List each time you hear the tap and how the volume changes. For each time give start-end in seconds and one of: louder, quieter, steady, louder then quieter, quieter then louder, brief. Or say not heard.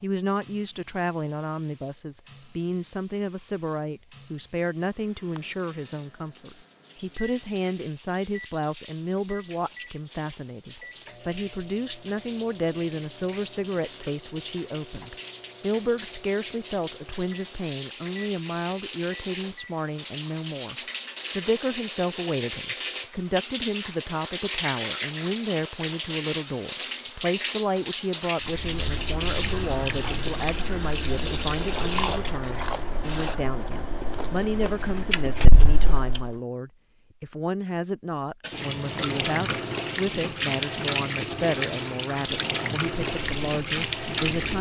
0.2-33.4 louder
38.4-44.5 steady.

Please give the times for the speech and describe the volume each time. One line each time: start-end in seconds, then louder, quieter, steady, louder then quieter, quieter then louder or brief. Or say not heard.
0.0-20.8 steady
21.4-44.5 steady.